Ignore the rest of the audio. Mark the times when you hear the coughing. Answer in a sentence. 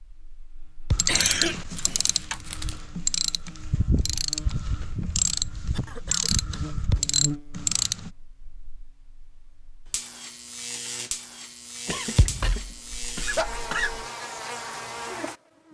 The coughing can be heard from 1.1 to 2.8 s, from 5.8 to 7.0 s and from 11.8 to 14.1 s.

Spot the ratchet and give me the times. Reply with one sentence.
The ratchet can be heard from 0.9 to 8.1 s.